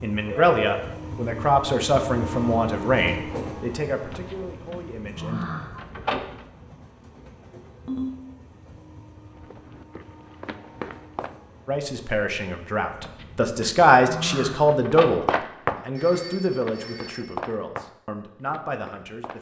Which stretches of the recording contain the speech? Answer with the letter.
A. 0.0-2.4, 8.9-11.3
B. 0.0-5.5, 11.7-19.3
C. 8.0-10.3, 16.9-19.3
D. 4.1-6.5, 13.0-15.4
B.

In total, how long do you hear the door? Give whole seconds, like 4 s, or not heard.
5 s.